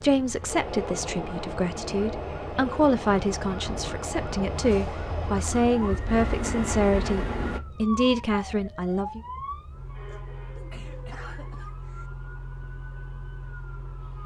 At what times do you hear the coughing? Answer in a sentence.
You can hear the coughing from 10.1 to 12.1 s.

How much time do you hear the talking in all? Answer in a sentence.
The talking can be heard for 9 seconds in total.